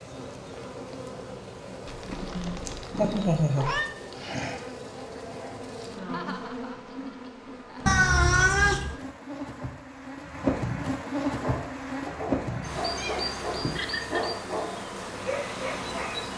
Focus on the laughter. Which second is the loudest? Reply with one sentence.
The volume of the laughter peaks at 3 seconds.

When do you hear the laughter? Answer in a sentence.
The laughter can be heard from 2.4 to 3.6 s, from 6.1 to 8.0 s and from 13.6 to 14.2 s.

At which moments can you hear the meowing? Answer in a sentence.
You can hear the meowing from 1.9 to 3.9 s, from 7.8 to 8.9 s and from 12.9 to 13.8 s.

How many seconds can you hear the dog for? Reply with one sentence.
The dog can be heard for 5 seconds in total.